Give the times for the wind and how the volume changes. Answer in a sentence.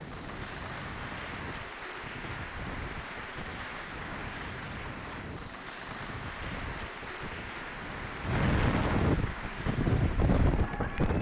The wind can be heard from 0.0 to 11.1 s, getting louder.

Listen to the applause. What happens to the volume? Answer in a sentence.
The volume of the applause stays about the same.